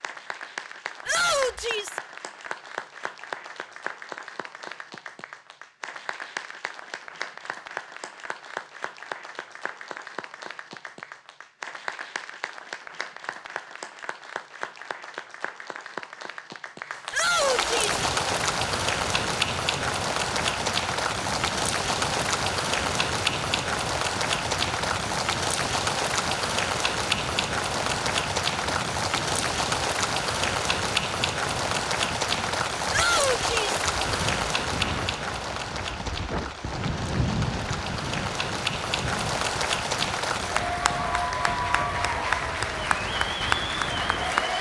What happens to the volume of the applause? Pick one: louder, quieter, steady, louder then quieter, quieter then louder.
louder.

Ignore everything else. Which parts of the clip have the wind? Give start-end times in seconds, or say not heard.
17.8-44.5.